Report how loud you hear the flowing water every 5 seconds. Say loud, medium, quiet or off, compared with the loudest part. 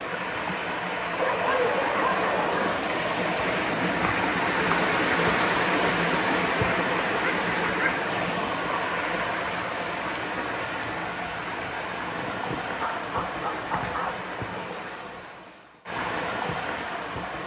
loud, loud, medium, medium.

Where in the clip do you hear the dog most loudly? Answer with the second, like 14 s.
2 s.